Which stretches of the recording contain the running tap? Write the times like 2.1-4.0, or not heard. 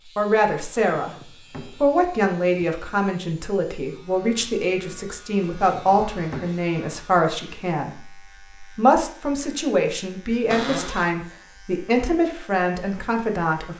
not heard.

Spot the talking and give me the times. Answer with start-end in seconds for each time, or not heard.
0.1-1.1, 1.8-13.7.